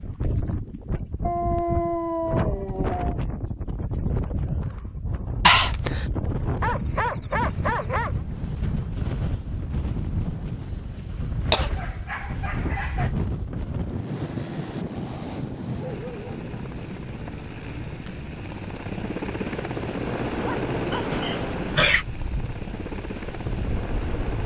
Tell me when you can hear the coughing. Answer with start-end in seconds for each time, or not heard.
5.5-6.0, 11.5-12.3, 20.9-22.1.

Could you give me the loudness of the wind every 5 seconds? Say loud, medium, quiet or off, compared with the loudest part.
loud, loud, loud, medium, medium.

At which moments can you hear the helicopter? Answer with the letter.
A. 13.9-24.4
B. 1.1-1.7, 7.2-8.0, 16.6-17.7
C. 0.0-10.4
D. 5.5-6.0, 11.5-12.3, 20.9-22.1
A.